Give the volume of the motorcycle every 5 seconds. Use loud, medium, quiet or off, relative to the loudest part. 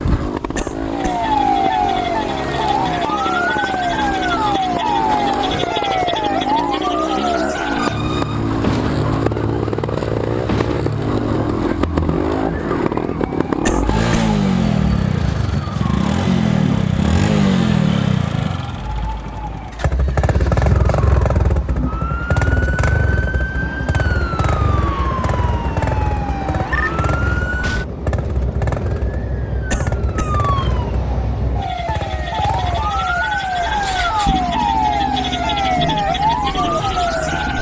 medium, loud, loud, loud, loud, medium, medium, medium.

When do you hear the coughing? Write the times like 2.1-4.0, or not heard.
0.6-1.2, 13.7-14.3, 29.7-30.4.